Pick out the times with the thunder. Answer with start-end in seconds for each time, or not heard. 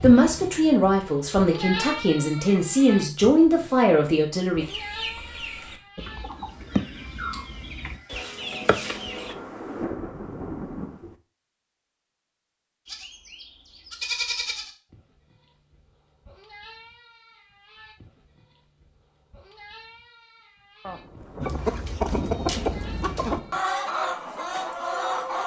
8.6-11.2, 20.9-23.6.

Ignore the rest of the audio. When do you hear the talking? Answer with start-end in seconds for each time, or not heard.
0.0-4.7.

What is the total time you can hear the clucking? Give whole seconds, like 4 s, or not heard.
9 s.